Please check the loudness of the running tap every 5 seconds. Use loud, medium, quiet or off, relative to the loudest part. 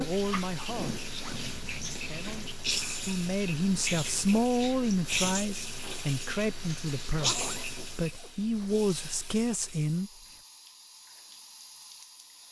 loud, loud, quiet.